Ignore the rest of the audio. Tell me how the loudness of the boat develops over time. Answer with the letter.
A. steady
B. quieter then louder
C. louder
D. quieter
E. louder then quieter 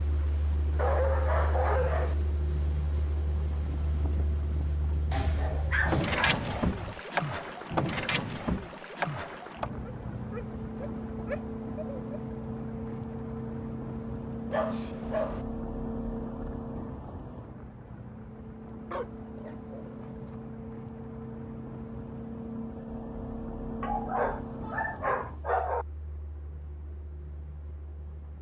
E.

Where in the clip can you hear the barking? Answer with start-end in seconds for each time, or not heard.
0.8-2.1, 5.1-7.0, 9.8-12.2, 14.5-15.4, 18.9-20.4, 23.8-25.9.